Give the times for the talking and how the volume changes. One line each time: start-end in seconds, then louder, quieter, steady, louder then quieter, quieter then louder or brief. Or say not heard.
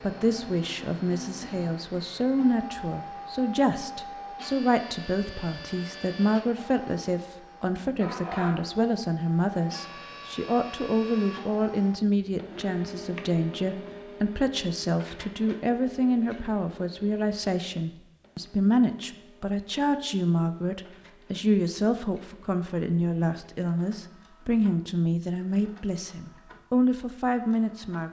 0.0-28.0 steady.